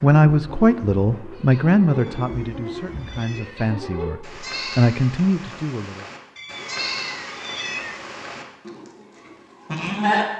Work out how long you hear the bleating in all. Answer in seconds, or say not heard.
10 s.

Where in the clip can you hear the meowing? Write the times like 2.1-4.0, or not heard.
1.9-3.7, 6.3-8.1.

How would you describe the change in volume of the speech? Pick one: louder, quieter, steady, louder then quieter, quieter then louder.
quieter then louder.